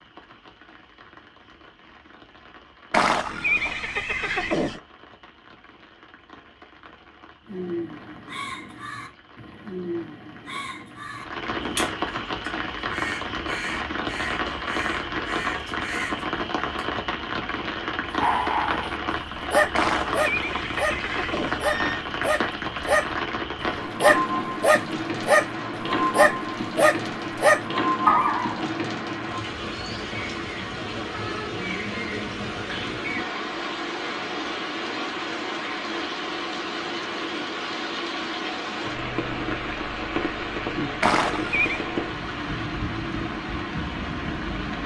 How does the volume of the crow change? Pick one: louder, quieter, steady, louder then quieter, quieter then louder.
steady.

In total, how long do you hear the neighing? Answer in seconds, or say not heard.
5 s.